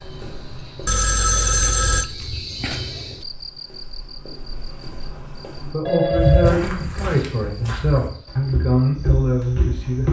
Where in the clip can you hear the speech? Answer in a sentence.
The speech can be heard from 5.6 to 10.0 s.